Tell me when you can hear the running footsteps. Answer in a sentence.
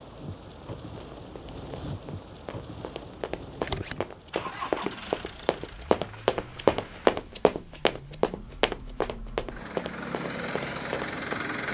The running footsteps can be heard from 0.6 to 11.4 s.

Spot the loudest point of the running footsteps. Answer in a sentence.
The loudest moment of the running footsteps is at 7 seconds.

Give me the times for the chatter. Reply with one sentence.
The chatter can't be heard in this clip.